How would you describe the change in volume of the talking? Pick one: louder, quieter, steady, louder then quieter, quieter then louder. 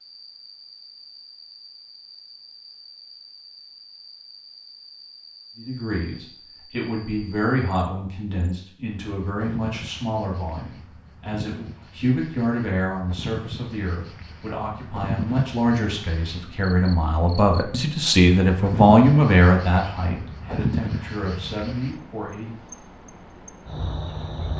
louder.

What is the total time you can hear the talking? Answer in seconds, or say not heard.
17 s.